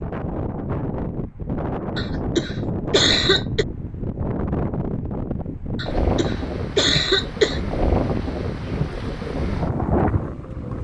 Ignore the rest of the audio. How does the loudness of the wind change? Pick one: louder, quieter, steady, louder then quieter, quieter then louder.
steady.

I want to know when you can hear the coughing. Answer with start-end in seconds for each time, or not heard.
1.9-3.6, 5.8-7.6.